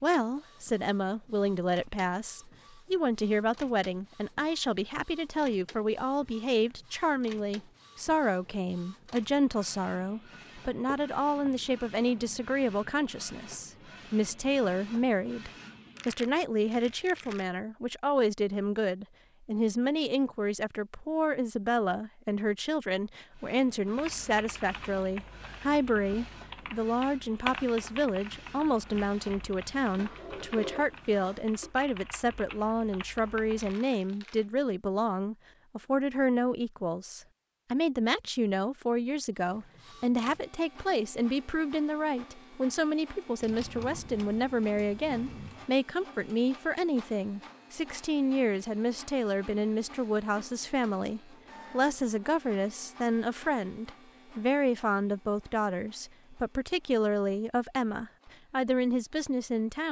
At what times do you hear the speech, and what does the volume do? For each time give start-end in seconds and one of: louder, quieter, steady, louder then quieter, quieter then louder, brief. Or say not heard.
0.0-59.8 steady.